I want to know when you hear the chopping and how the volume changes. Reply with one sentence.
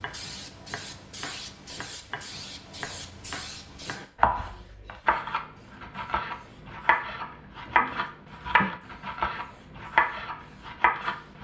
The chopping can be heard from 0.0 to 11.3 s, getting louder.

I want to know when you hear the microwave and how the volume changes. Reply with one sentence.
You can't hear the microwave here.